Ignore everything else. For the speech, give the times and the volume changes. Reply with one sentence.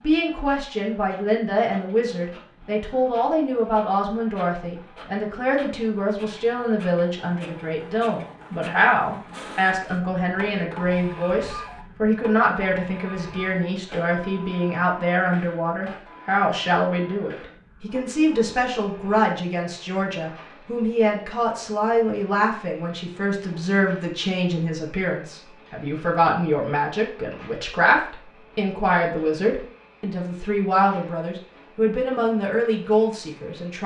You can hear the speech from 0.0 to 33.8 s, at a steady volume.